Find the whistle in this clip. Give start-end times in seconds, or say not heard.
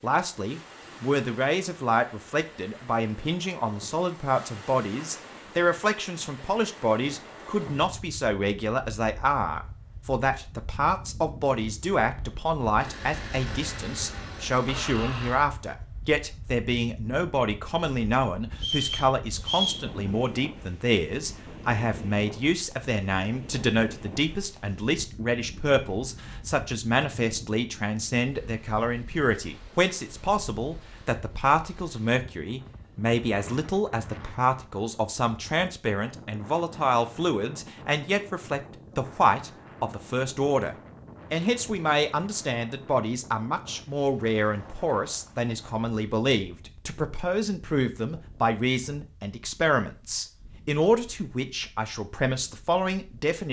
18.6-19.9.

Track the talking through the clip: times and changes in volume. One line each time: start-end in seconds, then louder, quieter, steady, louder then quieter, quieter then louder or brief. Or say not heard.
0.0-53.4 steady.